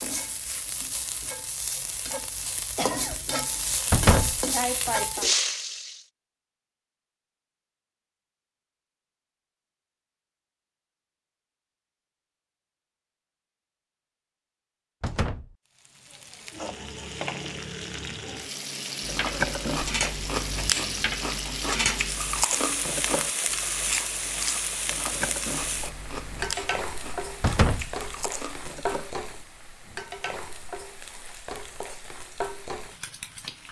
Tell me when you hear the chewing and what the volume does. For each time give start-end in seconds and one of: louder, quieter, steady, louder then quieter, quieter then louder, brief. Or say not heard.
19.0-29.1 quieter.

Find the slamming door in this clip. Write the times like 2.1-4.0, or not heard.
3.9-4.4, 15.0-15.6, 27.4-27.9.